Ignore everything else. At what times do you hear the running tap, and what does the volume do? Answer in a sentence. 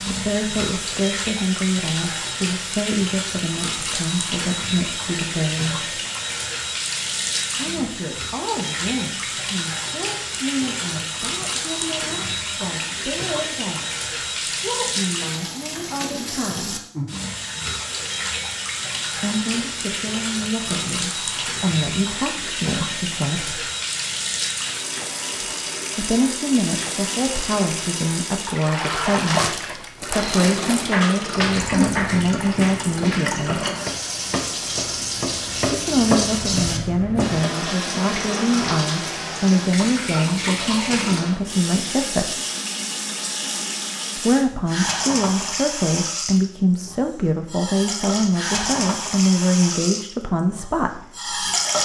You can hear the running tap from 0.0 to 51.8 s, at a steady volume.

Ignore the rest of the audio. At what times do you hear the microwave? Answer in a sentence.
You can't hear the microwave here.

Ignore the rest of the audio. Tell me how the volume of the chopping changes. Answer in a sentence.
The volume of the chopping goes down, then up.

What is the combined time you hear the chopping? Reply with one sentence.
The chopping can be heard for 6 seconds in total.